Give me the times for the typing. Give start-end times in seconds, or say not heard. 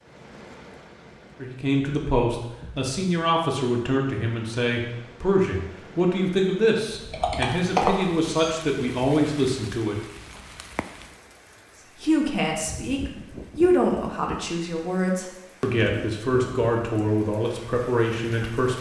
7.1-8.6.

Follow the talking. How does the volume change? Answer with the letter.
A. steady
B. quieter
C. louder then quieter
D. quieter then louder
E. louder
A.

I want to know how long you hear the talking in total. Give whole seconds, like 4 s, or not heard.
15 s.